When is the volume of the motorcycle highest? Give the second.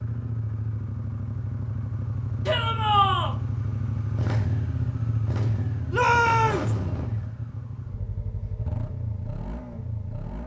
5 s.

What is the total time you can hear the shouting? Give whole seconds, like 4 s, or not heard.
2 s.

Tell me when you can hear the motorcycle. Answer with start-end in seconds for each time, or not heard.
0.0-10.4.